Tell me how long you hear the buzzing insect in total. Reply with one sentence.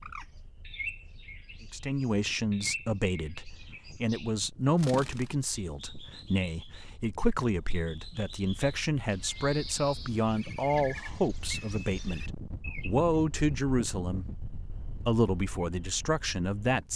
You can't hear the buzzing insect here.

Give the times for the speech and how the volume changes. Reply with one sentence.
You can hear the speech from 1.6 to 16.9 s, at a steady volume.